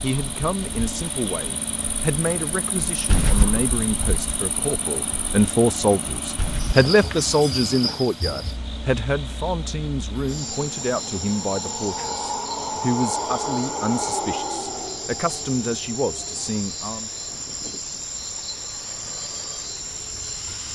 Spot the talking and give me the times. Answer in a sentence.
The talking can be heard from 0.0 to 17.1 s.